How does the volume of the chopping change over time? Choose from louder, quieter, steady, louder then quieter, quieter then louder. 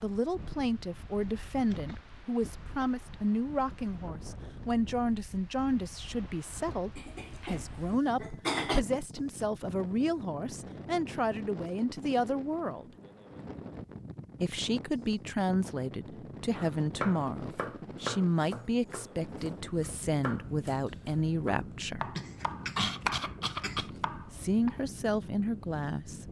quieter then louder.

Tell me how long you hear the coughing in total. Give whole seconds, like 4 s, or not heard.
4 s.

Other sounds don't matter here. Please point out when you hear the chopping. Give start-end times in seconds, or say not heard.
16.6-24.8.